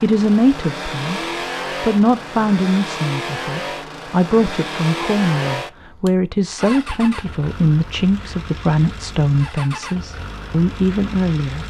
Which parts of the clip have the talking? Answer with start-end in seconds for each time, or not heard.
0.0-11.6.